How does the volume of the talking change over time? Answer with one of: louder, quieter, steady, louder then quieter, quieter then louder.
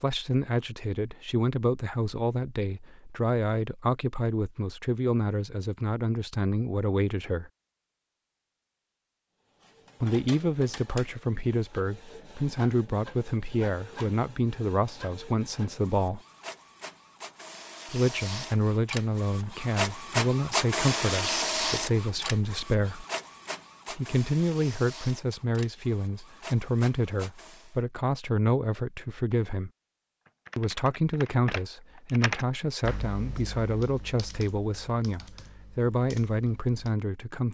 steady.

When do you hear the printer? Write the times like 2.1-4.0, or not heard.
9.6-27.8.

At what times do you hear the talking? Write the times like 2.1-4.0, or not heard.
0.0-7.5, 10.0-16.2, 17.9-23.1, 23.9-29.7, 30.6-37.4.